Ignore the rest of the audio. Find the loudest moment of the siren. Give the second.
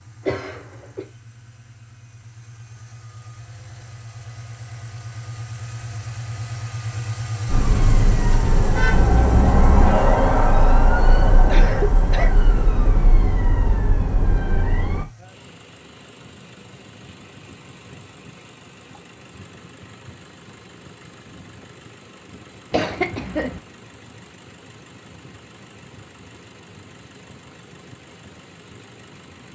10 s.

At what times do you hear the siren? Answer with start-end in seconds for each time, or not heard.
7.5-15.1.